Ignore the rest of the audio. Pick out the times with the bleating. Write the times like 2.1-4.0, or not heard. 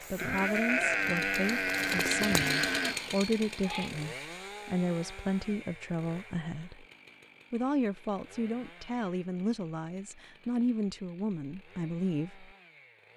0.0-3.9.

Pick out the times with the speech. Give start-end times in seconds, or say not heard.
0.0-6.8, 7.5-12.5.